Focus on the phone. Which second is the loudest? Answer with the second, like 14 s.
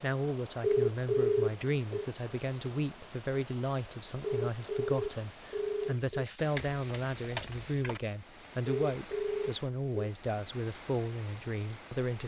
1 s.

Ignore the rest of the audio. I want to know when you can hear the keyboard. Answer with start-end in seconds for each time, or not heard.
6.5-8.0.